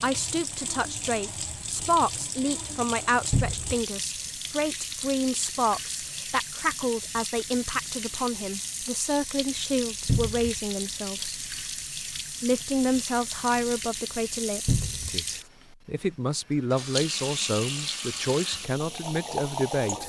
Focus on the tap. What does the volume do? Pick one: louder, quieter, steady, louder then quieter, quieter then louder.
steady.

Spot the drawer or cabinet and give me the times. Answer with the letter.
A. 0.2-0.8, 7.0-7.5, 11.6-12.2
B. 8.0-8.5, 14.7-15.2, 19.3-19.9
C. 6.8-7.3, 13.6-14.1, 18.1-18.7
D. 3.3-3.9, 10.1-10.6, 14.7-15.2
D.